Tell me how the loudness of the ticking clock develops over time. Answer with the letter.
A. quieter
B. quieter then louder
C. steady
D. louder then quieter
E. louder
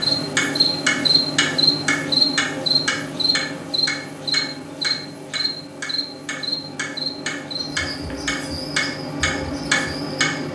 B.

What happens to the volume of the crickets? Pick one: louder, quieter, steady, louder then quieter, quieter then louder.
quieter.